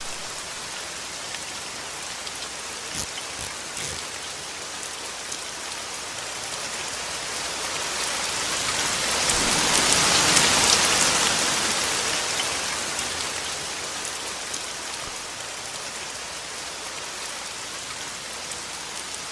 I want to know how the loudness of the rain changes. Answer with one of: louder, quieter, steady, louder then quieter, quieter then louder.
louder then quieter.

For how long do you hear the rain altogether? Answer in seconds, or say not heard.
19 s.